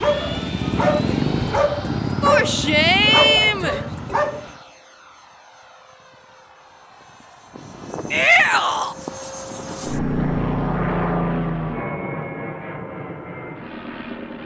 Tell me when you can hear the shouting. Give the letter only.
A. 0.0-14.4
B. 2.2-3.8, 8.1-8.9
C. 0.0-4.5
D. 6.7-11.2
B.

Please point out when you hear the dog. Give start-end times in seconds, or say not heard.
0.0-4.5.